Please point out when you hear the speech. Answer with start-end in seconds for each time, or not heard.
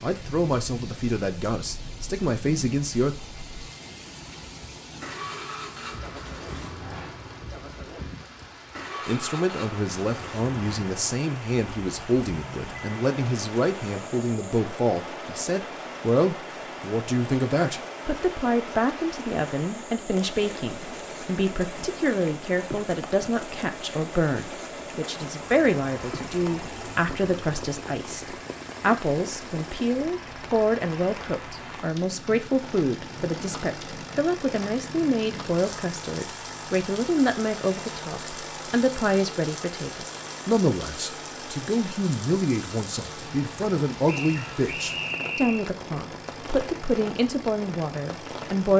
0.0-3.1, 9.1-48.7.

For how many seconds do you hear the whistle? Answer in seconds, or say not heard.
2 s.